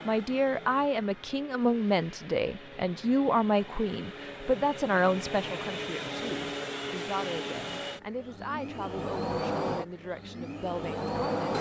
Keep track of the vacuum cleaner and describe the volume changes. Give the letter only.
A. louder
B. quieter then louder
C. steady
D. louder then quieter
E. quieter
A.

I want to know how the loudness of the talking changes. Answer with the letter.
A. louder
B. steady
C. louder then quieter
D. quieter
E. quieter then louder
D.